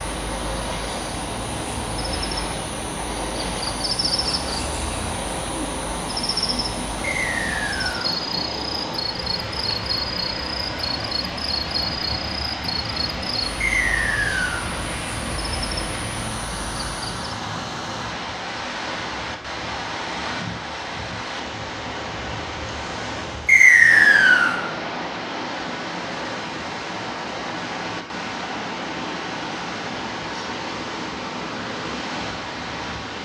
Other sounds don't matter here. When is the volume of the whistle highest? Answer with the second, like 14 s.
24 s.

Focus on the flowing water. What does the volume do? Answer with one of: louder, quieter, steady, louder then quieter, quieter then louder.
steady.